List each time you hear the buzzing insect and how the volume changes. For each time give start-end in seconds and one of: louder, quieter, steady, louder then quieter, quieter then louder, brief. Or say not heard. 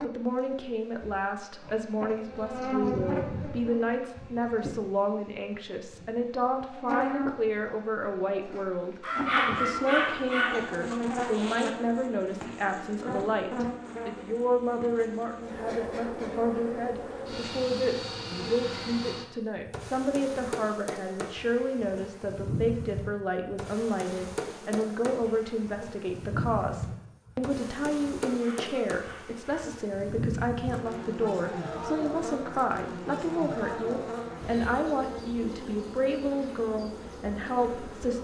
0.0-38.1 steady.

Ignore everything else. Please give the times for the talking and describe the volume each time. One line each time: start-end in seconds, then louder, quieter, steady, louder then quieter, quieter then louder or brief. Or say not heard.
0.0-38.1 steady.